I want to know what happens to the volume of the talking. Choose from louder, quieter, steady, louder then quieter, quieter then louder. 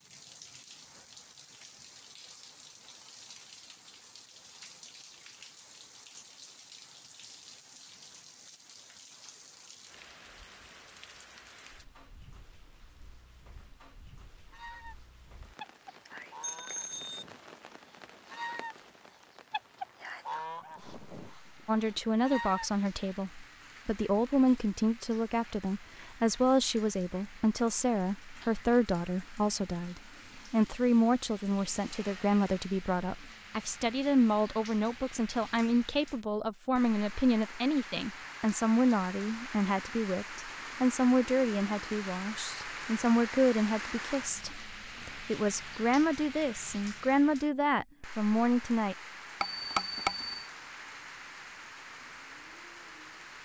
steady.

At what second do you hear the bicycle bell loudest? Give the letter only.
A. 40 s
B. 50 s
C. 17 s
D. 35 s
B.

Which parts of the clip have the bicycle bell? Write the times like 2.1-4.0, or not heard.
16.4-17.2, 49.4-50.5.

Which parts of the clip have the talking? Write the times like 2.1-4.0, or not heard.
21.6-49.0.